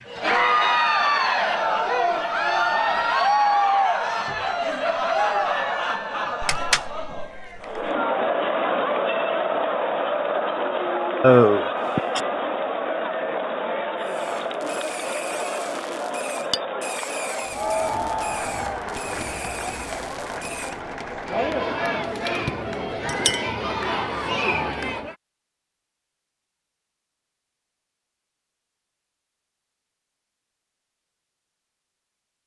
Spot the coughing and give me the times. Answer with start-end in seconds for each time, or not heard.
11.2-12.2.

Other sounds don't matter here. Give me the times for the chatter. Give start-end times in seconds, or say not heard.
0.0-25.1.